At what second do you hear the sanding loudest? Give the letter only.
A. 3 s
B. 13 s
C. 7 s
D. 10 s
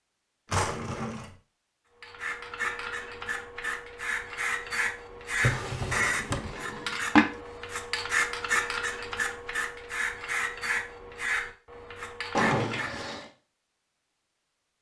C.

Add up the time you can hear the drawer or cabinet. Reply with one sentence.
You can hear the drawer or cabinet for 3 seconds altogether.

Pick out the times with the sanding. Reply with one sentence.
You can hear the sanding from 2.0 to 13.2 s.